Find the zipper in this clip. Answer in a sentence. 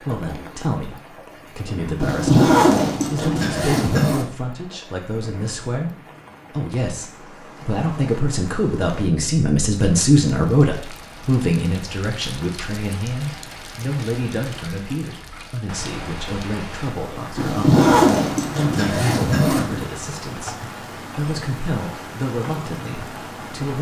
You can hear the zipper from 2.0 to 4.3 s and from 17.4 to 19.9 s.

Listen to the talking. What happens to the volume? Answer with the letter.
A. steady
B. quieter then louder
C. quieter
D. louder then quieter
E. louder
D.